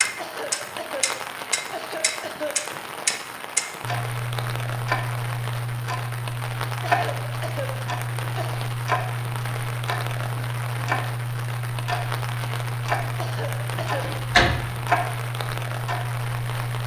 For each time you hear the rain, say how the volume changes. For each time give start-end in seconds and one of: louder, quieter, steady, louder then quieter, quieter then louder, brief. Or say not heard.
0.0-16.8 steady.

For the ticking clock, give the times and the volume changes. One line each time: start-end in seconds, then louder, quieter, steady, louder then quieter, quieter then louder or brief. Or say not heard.
0.0-16.8 steady.